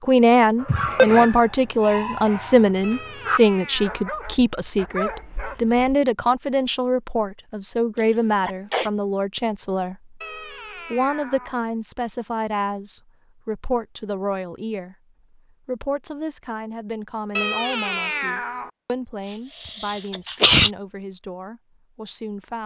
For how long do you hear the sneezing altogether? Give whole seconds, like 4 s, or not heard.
3 s.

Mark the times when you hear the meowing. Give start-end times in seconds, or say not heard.
2.8-4.2, 10.2-11.6, 17.4-18.7.